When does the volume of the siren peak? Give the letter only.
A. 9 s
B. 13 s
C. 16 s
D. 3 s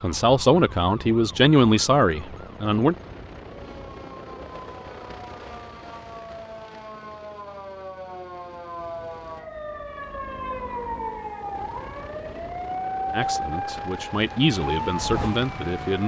B.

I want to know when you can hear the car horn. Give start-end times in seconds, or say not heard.
not heard.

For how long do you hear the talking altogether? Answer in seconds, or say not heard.
6 s.